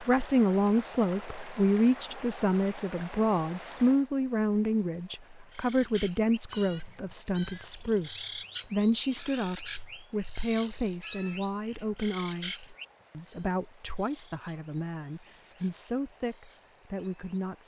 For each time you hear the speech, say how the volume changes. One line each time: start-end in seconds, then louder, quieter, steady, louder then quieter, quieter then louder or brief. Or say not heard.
0.0-17.6 quieter.